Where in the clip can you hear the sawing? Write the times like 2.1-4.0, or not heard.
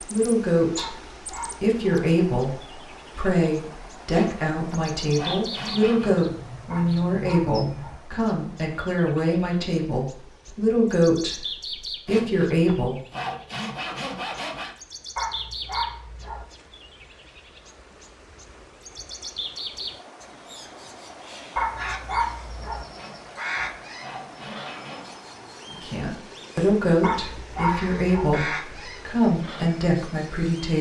4.1-6.2, 12.1-14.8, 22.9-25.2.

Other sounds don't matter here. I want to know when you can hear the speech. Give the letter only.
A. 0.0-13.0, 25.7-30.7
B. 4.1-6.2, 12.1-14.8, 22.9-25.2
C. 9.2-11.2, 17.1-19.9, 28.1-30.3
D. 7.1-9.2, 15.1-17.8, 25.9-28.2
A.